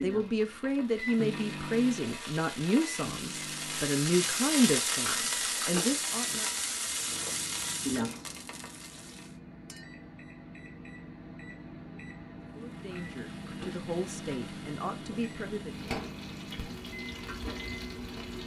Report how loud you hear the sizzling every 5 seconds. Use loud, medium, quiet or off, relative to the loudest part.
loud, loud, quiet, medium.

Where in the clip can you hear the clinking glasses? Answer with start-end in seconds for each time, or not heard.
9.7-10.1.